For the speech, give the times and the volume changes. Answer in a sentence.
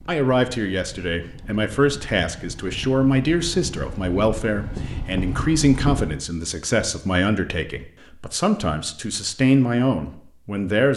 The speech can be heard from 0.1 to 10.9 s, at a steady volume.